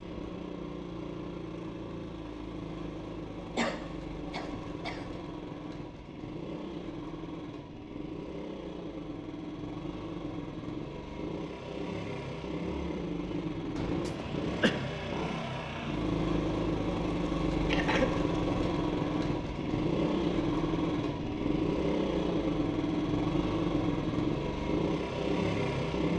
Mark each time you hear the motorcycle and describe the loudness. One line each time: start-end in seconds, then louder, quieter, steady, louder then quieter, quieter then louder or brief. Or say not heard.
0.0-26.1 louder.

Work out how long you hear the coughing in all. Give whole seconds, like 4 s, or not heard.
3 s.